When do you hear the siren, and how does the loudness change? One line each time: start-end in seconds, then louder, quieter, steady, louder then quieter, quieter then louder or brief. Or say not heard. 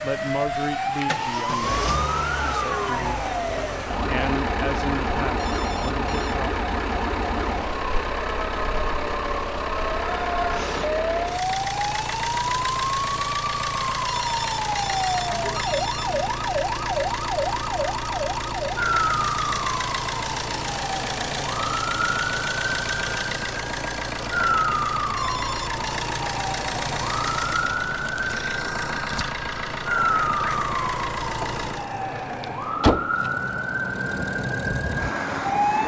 0.0-35.8 steady.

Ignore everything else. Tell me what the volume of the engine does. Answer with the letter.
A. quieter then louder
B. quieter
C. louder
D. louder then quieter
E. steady
E.